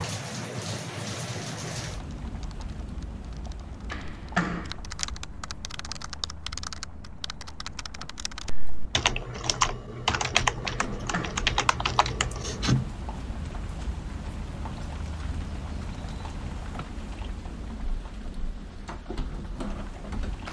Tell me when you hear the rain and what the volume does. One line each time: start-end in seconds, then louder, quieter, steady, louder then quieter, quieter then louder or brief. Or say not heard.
0.0-20.4 quieter then louder.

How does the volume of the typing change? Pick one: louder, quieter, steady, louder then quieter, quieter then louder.
louder.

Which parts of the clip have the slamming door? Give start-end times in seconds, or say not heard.
3.9-4.8, 10.7-11.4.